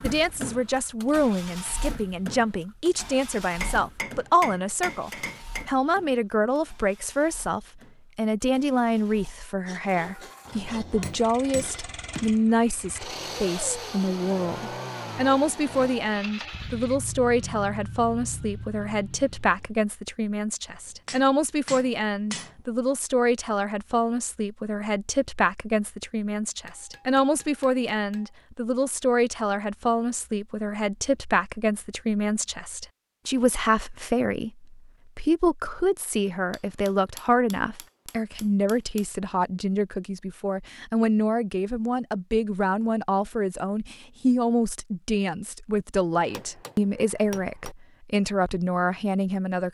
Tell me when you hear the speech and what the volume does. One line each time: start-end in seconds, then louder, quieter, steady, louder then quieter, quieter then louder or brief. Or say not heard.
0.0-49.7 steady.